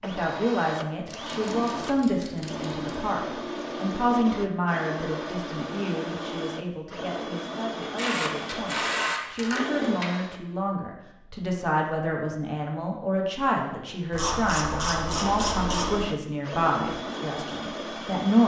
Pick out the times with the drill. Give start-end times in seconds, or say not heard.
0.0-10.4, 14.9-18.4.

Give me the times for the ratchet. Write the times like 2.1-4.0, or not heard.
1.1-2.8, 7.8-10.2, 14.1-16.0.